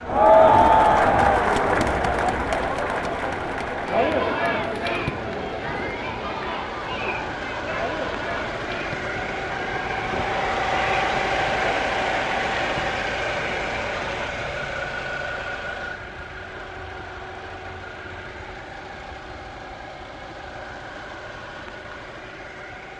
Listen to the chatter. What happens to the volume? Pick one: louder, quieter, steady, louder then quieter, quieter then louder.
quieter.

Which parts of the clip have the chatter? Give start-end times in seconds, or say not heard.
0.0-14.3.